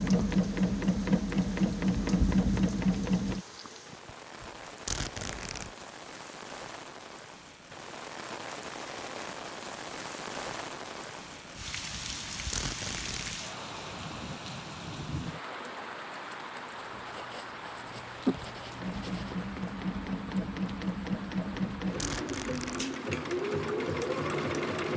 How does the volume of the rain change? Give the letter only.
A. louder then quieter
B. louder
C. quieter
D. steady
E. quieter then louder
A.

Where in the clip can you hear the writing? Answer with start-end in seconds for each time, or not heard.
16.7-19.4.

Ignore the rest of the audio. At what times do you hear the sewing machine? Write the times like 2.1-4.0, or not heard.
0.0-3.5, 18.8-24.9.